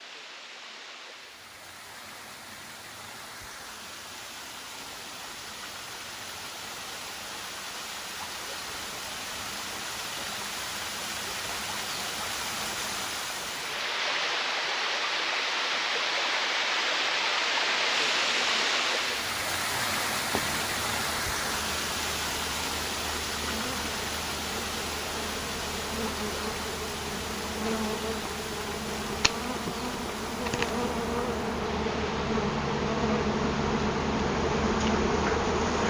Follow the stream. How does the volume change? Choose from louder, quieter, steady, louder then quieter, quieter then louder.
louder then quieter.